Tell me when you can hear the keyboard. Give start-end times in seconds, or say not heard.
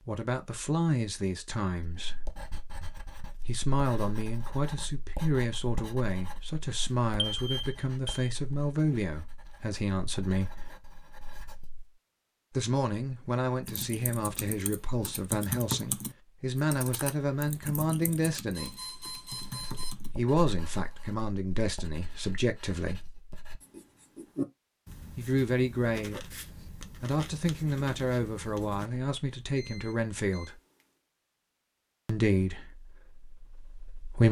13.7-20.1.